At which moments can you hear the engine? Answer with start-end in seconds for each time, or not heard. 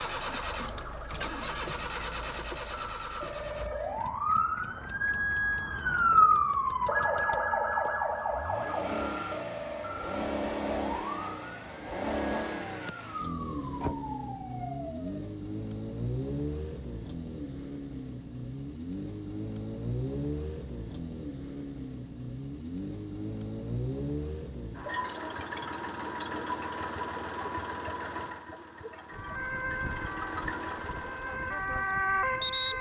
0.0-32.7.